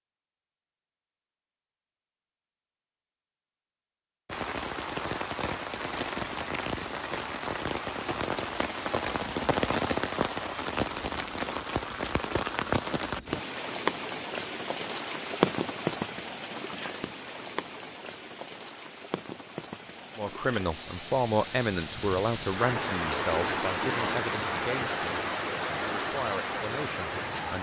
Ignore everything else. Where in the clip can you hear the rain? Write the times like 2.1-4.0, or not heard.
4.2-27.5.